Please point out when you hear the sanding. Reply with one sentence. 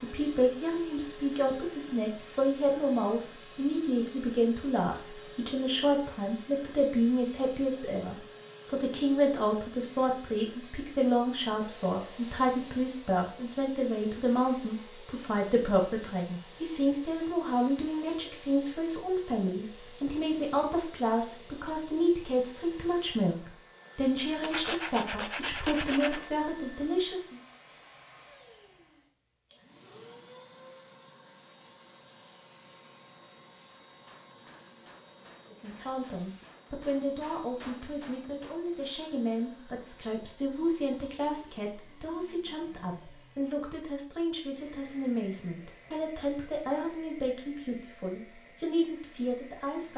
The sanding can be heard from 24.4 to 26.3 s.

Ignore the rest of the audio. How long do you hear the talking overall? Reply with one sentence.
You can hear the talking for 42 seconds altogether.